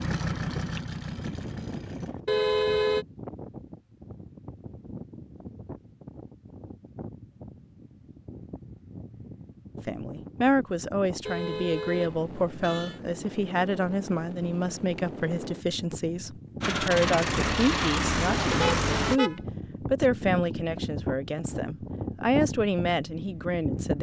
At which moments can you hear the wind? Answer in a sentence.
The wind can be heard from 0.0 to 23.9 s.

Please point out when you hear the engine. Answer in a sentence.
You can hear the engine from 0.0 to 2.2 s and from 16.6 to 19.2 s.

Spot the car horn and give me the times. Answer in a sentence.
You can hear the car horn from 2.2 to 3.0 s, from 11.2 to 13.0 s and from 18.5 to 19.4 s.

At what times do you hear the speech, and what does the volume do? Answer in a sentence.
The speech can be heard from 9.8 to 23.9 s, at a steady volume.